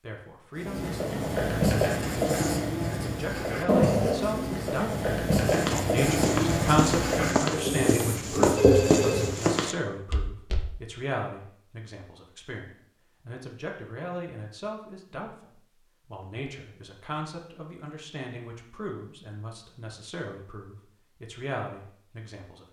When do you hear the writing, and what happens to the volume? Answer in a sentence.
The writing can be heard from 0.6 to 9.3 s, at a steady volume.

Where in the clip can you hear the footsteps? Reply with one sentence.
The footsteps can be heard from 5.5 to 10.8 s.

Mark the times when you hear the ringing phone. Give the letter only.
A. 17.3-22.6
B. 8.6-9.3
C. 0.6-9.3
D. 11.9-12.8
B.